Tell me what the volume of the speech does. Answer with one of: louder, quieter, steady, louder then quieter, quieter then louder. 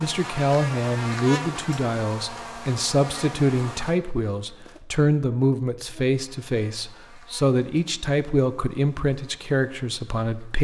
steady.